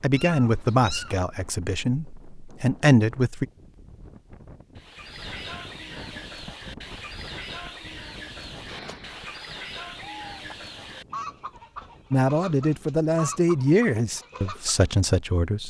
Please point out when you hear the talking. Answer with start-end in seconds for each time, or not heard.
0.0-3.5, 12.1-15.6.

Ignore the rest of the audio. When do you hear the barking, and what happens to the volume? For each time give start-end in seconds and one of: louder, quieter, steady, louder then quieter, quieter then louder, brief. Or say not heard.
not heard.